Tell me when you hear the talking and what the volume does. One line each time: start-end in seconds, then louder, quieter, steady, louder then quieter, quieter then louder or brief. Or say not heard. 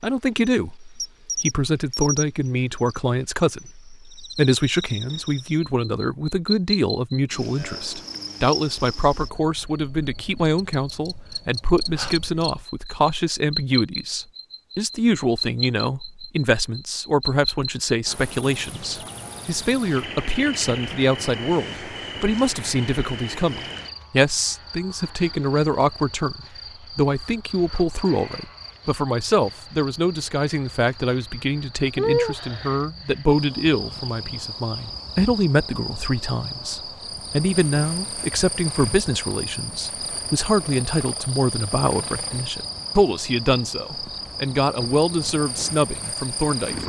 0.0-46.8 steady.